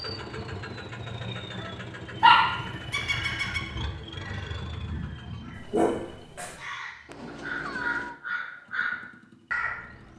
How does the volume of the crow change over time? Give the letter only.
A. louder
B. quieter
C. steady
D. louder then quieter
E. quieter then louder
A.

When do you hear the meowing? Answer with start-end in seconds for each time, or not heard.
1.2-2.9, 7.0-8.2.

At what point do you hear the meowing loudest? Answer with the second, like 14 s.
8 s.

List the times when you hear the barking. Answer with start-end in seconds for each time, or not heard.
2.2-3.6, 5.5-6.5.